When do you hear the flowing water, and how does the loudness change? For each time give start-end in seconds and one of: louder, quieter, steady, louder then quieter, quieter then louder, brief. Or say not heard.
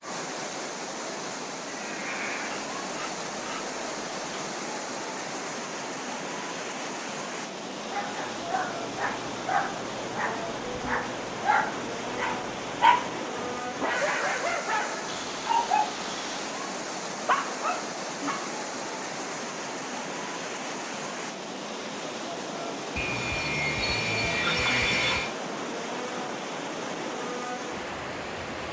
0.0-28.6 steady.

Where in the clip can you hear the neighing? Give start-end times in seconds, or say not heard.
1.6-2.6.